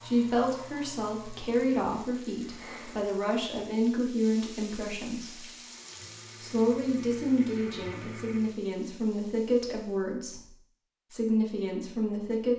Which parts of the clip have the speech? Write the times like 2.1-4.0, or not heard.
0.0-5.5, 6.4-10.5, 11.1-12.5.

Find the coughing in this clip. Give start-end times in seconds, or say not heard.
not heard.